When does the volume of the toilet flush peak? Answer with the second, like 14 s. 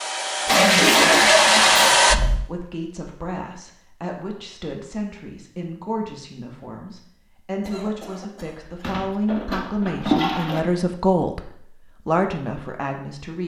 1 s.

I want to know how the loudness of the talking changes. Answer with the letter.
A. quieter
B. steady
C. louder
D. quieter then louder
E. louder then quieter
C.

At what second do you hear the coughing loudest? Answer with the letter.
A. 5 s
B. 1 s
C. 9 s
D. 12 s
B.